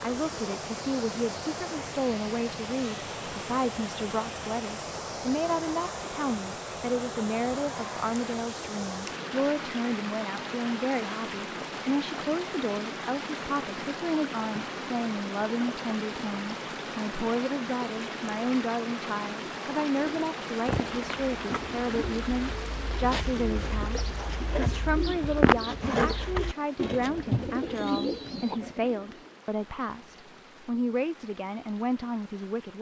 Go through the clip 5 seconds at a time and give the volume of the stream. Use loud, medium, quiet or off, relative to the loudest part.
loud, loud, loud, loud, loud, quiet, quiet.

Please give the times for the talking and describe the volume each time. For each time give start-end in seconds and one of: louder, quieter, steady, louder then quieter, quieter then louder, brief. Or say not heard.
0.0-32.7 steady.